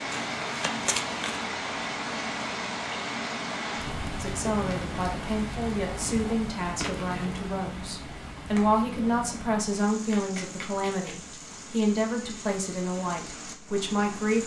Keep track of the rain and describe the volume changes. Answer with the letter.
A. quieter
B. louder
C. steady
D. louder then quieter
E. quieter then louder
A.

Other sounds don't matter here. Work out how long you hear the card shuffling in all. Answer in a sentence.
The card shuffling can be heard for 4 seconds in total.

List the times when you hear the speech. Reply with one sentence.
The speech can be heard from 4.2 to 14.4 s.